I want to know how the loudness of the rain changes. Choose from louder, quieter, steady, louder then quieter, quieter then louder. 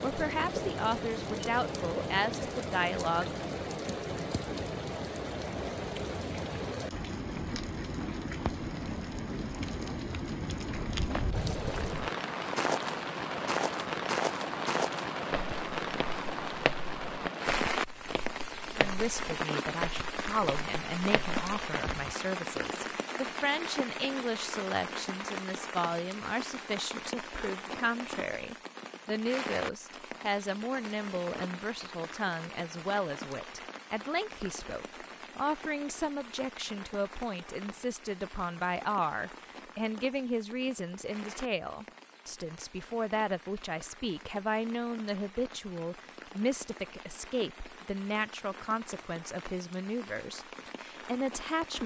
quieter.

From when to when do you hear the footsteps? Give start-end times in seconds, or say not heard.
10.7-22.1.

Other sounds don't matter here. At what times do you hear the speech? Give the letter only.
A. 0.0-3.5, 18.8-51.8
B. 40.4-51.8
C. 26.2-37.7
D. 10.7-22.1
A.